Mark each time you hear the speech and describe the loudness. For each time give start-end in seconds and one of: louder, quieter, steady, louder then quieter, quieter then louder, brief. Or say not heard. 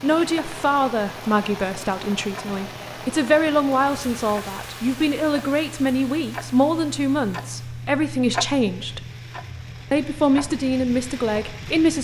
0.0-9.0 steady
9.9-11.9 brief.